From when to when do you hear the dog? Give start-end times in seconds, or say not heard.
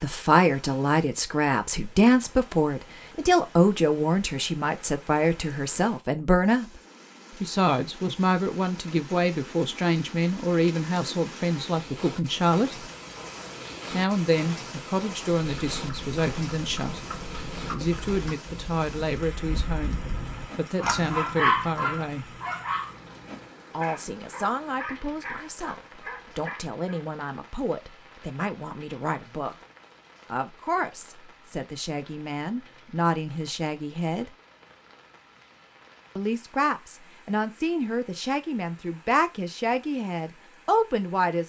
20.4-27.0.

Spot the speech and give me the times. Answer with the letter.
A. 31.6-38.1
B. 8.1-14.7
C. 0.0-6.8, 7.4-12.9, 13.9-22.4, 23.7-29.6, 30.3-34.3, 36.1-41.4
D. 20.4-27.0
C.